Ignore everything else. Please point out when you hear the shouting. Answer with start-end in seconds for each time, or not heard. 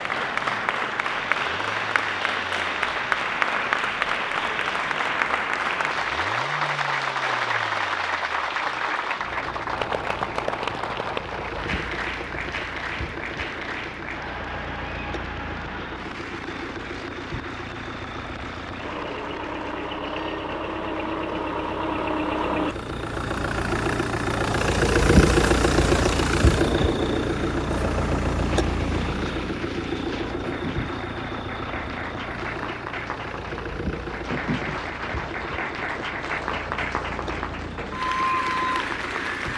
not heard.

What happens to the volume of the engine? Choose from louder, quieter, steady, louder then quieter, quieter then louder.
louder then quieter.